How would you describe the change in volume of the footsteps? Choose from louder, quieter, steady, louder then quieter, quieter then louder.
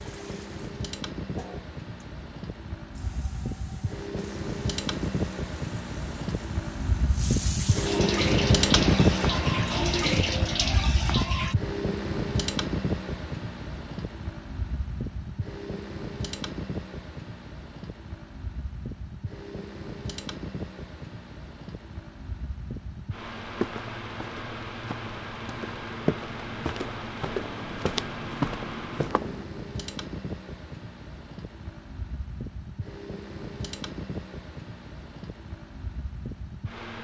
louder.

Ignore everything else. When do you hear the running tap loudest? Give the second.
10 s.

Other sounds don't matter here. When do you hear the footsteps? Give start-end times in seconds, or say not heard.
23.4-29.4.